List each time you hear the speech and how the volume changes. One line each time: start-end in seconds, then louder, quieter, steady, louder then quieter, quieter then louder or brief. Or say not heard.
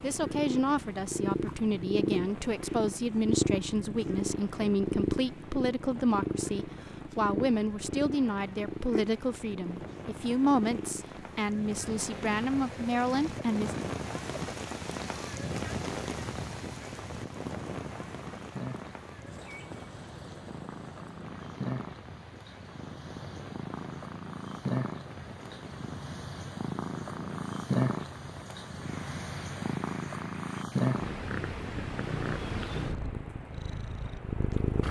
0.0-13.8 steady.